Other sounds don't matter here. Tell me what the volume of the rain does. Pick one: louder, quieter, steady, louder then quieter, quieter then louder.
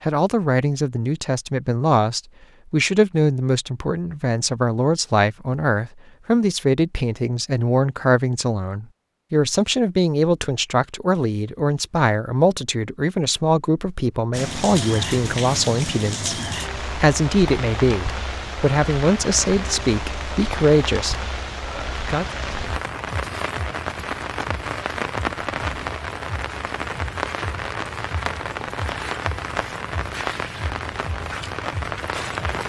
steady.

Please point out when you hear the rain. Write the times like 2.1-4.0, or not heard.
14.3-32.6.